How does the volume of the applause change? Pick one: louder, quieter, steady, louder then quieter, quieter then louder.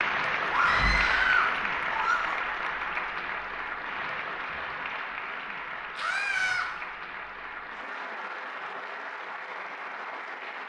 quieter.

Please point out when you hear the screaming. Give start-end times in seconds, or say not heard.
0.5-2.4, 6.0-6.7.